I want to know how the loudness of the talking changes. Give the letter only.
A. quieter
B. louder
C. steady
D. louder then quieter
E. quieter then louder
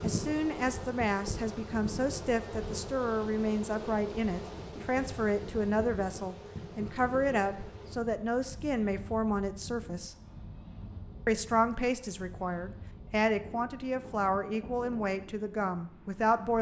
C.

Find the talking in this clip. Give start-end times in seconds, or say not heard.
0.0-10.2, 11.2-16.5.